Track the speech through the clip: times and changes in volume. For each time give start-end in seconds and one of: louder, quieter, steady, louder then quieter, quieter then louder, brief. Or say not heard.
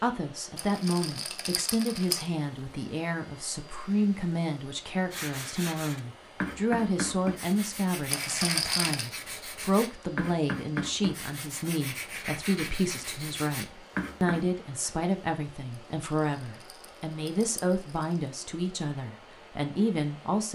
0.0-20.5 steady.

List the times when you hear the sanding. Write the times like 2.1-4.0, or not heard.
5.1-14.4.